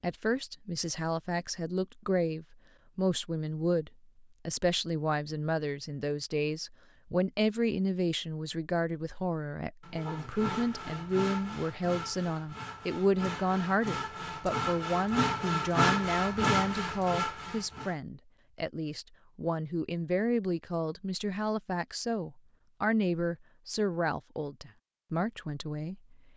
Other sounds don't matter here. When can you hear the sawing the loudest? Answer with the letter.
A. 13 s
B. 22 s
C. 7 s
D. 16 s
D.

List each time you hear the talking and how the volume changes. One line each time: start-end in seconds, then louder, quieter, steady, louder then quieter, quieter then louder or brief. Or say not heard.
0.0-26.3 steady.